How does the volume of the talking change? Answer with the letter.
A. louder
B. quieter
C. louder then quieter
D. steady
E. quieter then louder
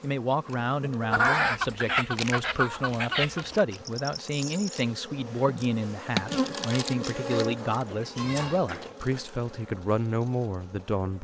D.